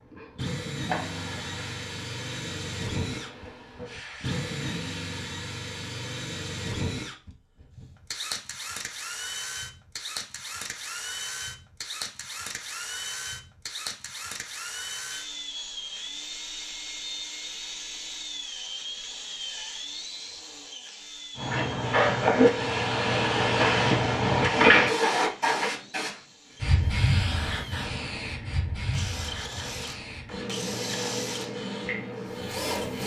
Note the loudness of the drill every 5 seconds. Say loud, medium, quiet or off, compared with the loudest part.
loud, loud, loud, loud, medium, medium, loud.